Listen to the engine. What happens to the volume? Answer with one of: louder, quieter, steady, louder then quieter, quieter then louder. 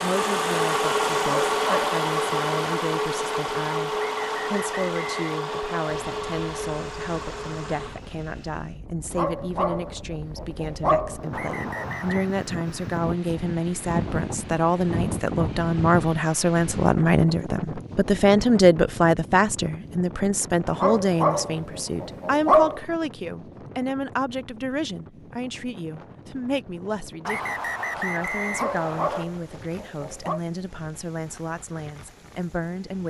quieter.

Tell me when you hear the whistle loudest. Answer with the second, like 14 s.
28 s.